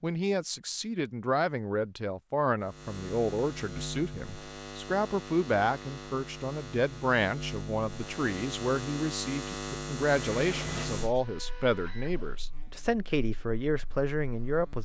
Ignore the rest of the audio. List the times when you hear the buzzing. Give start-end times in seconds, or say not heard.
2.6-14.7.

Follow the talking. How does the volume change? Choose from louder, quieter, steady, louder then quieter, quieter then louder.
steady.